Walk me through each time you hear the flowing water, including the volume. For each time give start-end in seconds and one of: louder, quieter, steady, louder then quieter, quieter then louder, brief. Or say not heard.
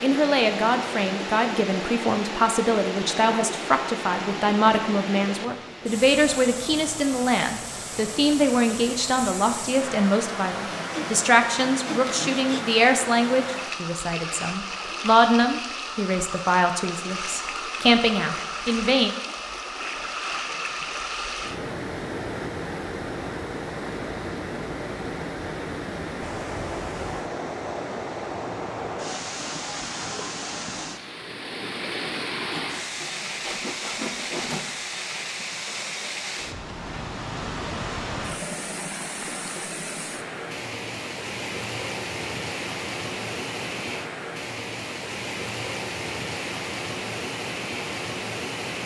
0.0-48.8 steady.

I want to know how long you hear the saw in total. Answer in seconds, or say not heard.
4 s.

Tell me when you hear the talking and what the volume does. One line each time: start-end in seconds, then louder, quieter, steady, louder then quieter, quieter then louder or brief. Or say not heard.
0.0-19.1 steady.